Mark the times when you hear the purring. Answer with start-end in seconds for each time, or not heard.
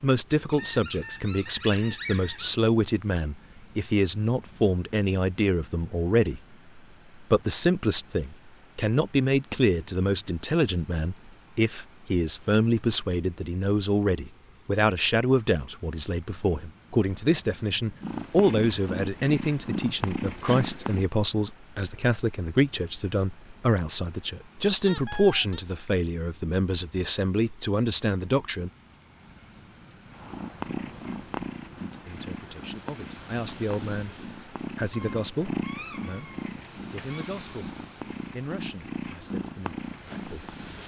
18.0-21.1, 30.1-40.8.